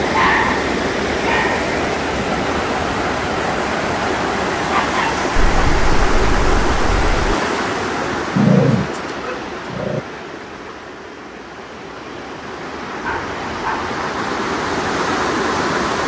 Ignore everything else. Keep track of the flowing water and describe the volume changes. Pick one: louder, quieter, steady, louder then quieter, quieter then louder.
quieter then louder.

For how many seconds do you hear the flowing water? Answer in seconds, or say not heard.
16 s.